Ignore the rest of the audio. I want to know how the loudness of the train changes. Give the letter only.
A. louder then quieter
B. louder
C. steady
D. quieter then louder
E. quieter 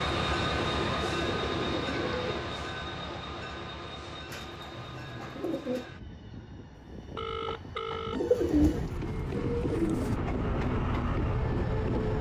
D.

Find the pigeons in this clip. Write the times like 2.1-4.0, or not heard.
0.6-2.5, 4.2-5.9, 8.1-10.2.